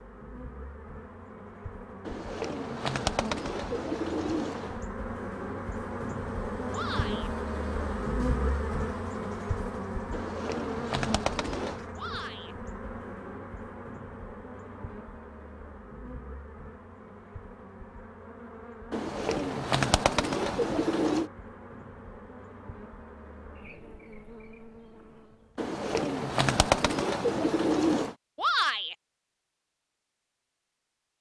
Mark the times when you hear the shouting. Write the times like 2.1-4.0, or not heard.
6.7-7.3, 11.9-12.6, 28.4-28.9.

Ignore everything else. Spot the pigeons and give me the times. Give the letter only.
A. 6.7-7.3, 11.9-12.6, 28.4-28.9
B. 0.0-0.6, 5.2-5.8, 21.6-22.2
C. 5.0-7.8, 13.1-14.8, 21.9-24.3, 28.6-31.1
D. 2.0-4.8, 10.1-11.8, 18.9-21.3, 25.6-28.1
D.